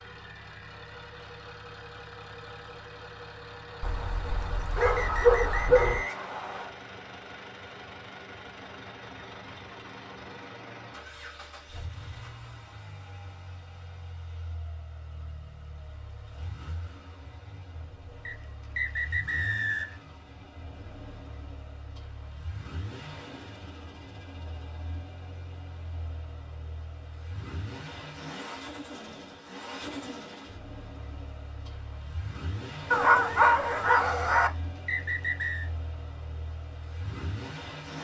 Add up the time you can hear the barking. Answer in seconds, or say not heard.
4 s.